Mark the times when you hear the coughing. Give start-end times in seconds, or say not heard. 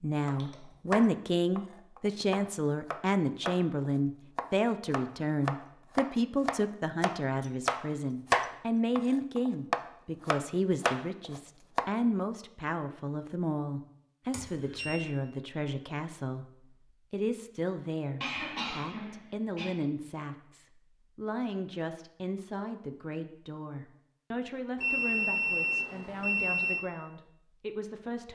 18.2-19.8.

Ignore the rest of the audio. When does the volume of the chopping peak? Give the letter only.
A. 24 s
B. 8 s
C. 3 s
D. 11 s
B.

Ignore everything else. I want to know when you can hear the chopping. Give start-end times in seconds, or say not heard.
0.2-11.9.